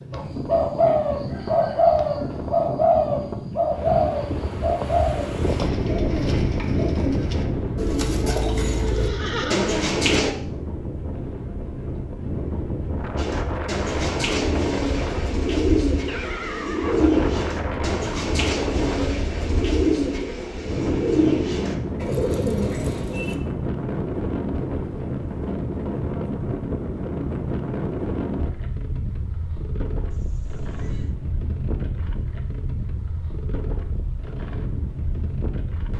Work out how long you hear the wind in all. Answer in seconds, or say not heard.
36 s.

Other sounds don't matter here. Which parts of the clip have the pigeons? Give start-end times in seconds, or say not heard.
0.1-10.3, 13.2-23.4.